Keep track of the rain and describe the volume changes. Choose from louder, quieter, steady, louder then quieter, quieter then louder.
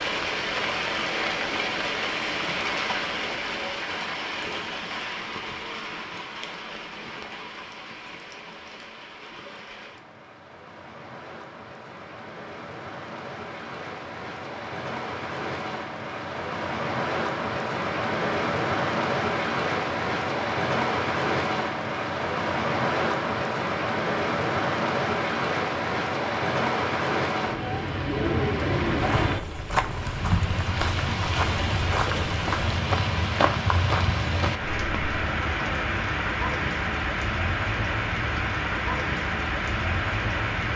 quieter then louder.